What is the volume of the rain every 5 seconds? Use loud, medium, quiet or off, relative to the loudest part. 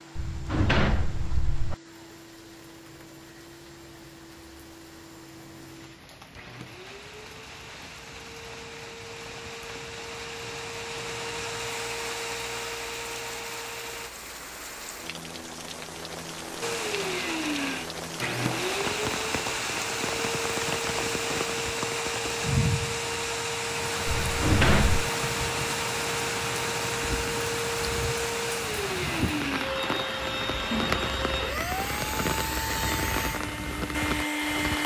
quiet, quiet, medium, loud, loud, loud, loud.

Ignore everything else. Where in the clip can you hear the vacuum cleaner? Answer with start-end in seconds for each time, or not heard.
0.0-14.1, 16.6-34.8.